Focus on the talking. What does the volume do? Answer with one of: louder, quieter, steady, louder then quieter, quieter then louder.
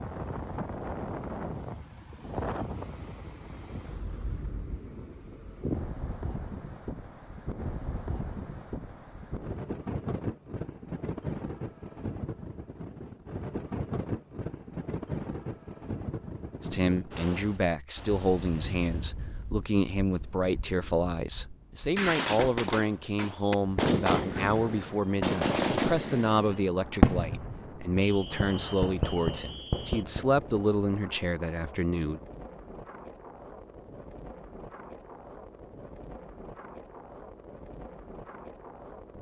steady.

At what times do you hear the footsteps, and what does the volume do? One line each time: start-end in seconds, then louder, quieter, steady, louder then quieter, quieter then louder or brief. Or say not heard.
not heard.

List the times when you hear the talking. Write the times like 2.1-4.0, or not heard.
16.6-32.2.